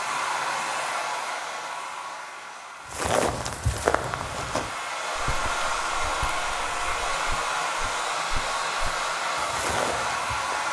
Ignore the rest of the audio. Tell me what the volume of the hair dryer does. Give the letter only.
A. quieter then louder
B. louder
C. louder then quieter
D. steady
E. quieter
A.